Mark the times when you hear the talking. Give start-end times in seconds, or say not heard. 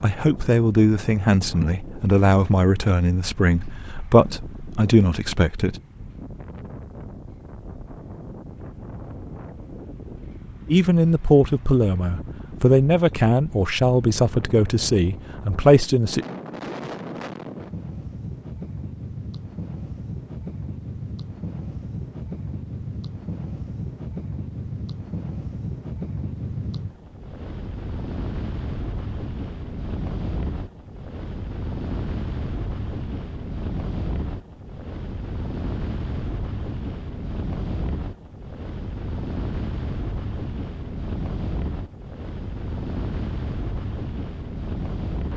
0.0-5.8, 10.7-16.2.